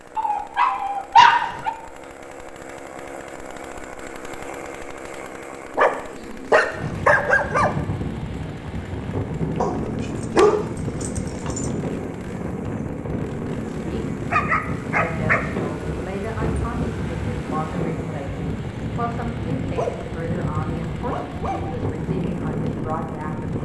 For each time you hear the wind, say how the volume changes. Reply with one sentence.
You can hear the wind from 6.7 to 23.6 s, at a steady volume.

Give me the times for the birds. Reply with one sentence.
The birds can't be heard in this clip.